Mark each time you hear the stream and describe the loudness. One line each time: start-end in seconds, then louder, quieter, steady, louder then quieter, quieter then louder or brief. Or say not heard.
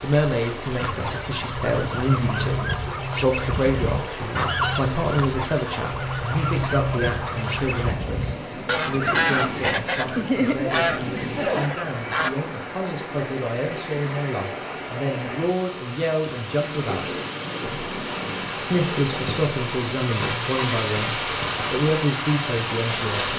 0.0-23.3 louder.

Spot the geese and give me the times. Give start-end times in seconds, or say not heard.
0.8-12.3.